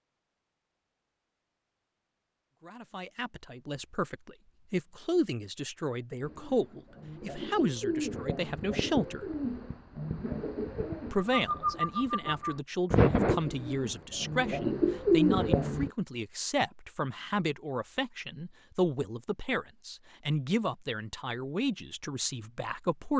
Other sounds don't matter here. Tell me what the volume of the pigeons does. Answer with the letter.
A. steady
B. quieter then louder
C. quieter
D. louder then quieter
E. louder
E.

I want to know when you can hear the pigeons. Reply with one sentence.
The pigeons can be heard from 6.2 to 15.9 s.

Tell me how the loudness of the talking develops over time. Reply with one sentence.
The volume of the talking stays about the same.